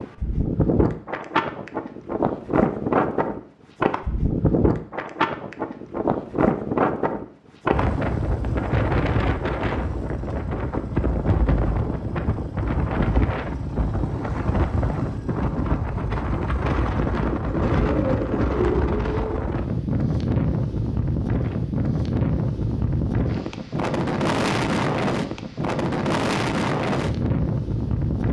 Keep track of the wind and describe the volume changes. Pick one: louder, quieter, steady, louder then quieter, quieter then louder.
steady.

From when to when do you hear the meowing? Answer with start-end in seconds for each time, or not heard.
not heard.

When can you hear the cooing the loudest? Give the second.
19 s.